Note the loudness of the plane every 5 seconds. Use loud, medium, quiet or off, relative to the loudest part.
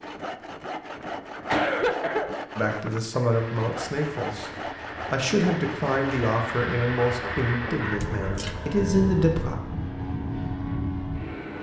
medium, loud, loud.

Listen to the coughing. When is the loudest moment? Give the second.
2 s.